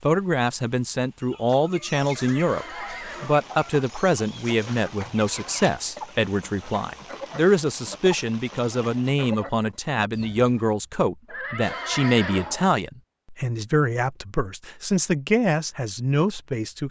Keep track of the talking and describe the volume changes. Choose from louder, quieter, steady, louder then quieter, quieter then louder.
steady.